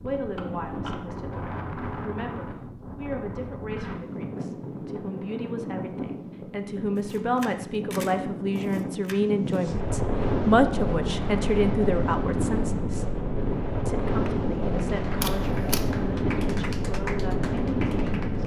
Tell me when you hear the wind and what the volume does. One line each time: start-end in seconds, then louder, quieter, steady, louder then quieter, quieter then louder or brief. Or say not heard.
0.0-18.4 louder.